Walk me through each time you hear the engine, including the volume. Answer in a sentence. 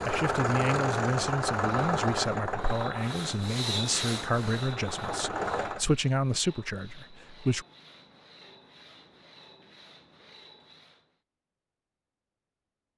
You can hear the engine from 0.0 to 5.8 s, getting quieter then louder.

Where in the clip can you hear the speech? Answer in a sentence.
The speech can be heard from 0.1 to 7.7 s.